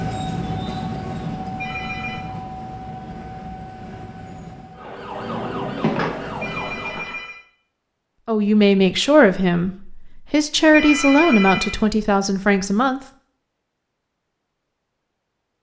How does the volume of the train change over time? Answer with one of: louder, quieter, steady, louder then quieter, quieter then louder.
quieter.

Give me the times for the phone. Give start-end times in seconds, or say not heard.
1.6-2.2, 6.4-7.4, 10.7-11.8.